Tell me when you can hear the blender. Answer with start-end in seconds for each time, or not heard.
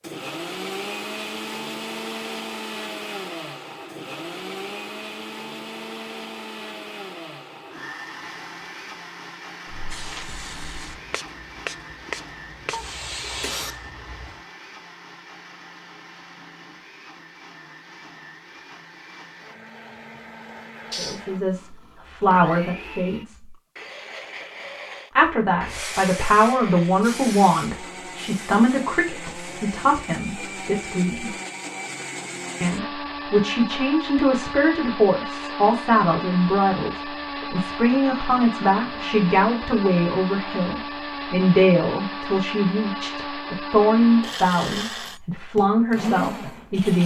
0.0-47.0.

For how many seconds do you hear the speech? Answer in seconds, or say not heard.
23 s.